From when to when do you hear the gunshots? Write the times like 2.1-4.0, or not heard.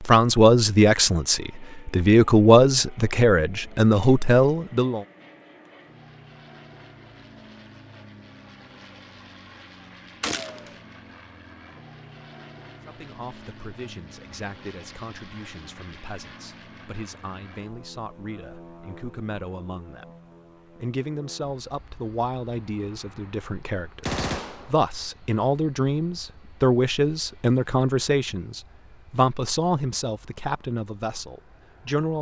10.2-10.7, 24.0-24.7.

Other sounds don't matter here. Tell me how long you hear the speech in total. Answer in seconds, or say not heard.
24 s.